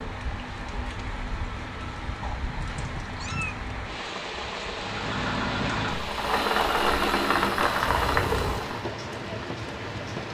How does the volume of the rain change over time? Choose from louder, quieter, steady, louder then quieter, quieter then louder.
steady.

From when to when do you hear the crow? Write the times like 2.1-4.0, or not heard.
not heard.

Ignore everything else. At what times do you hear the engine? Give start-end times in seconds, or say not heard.
4.7-8.8.